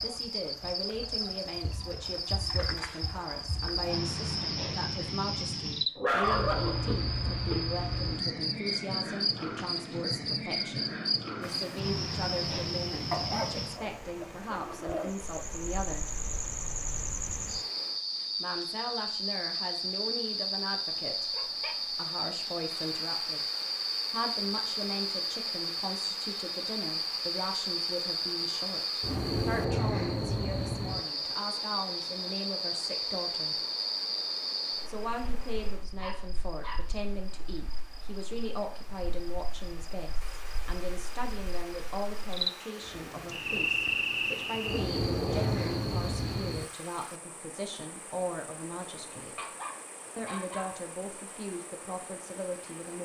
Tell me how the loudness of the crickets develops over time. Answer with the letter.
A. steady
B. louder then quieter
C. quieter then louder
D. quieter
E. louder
A.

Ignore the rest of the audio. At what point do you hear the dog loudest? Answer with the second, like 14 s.
6 s.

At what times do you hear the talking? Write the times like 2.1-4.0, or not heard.
0.0-16.1, 18.4-23.5, 24.1-33.5, 34.9-49.5, 50.1-53.0.